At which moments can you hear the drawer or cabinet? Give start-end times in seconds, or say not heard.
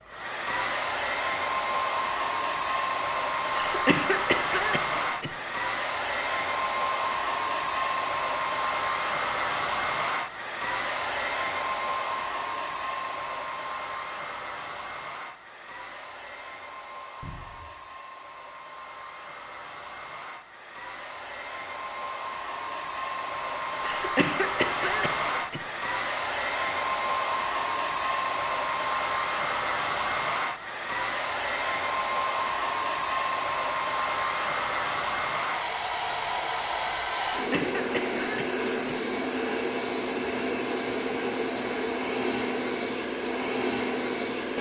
17.2-17.8.